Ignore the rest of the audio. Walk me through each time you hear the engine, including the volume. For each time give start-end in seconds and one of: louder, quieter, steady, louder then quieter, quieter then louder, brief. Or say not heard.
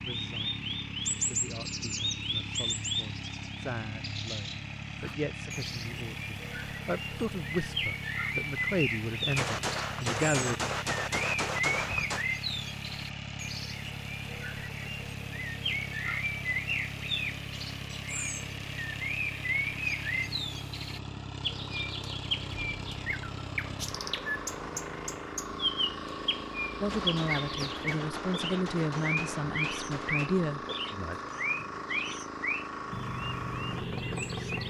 0.0-34.6 steady.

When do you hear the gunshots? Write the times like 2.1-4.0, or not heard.
9.3-12.2, 26.9-30.3.